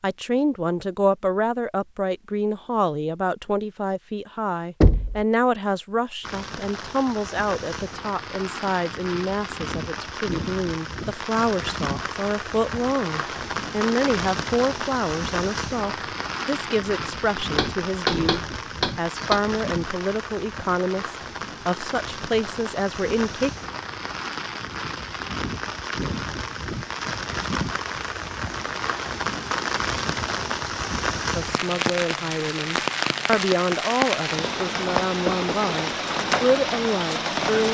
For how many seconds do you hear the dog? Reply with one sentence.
You can't hear the dog here.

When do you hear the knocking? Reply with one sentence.
The knocking can be heard from 4.8 to 5.2 s, from 17.6 to 19.4 s and from 35.2 to 35.8 s.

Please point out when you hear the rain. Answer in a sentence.
You can hear the rain from 6.2 to 37.6 s.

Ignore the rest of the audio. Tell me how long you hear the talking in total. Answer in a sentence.
The talking can be heard for 30 seconds in total.